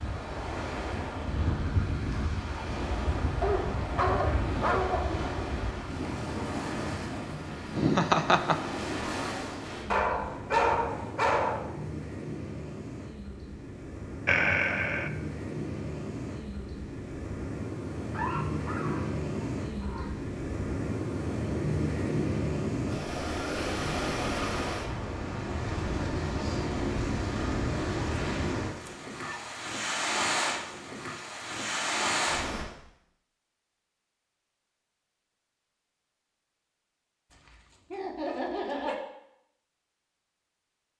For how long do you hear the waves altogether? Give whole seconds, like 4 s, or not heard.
33 s.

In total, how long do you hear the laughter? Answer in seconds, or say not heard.
3 s.